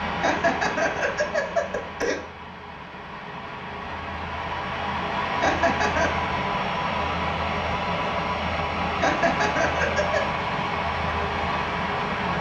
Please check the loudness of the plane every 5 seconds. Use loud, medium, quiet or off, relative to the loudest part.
medium, loud, loud.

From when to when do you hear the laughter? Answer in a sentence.
The laughter can be heard from 0.2 to 2.2 s, from 5.4 to 6.2 s and from 9.0 to 10.2 s.